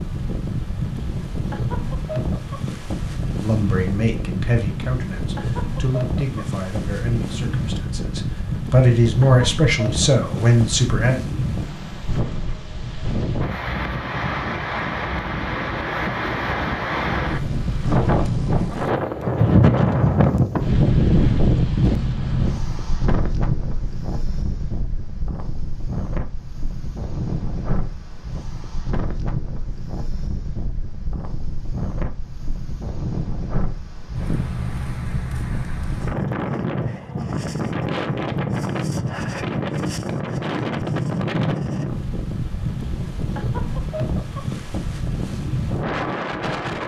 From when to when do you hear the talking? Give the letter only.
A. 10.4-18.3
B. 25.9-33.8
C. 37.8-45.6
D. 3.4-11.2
D.